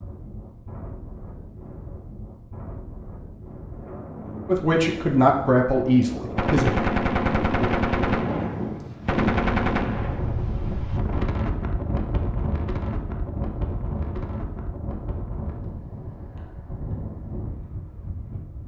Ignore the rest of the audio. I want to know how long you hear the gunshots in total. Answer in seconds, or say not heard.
4 s.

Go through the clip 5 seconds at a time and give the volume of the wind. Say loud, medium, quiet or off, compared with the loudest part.
medium, loud, loud, medium.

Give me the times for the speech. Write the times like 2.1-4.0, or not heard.
4.5-6.7.